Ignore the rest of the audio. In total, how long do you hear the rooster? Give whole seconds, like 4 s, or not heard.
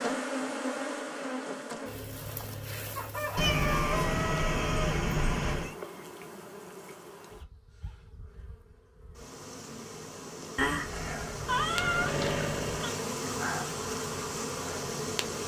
2 s.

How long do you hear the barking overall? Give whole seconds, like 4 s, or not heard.
not heard.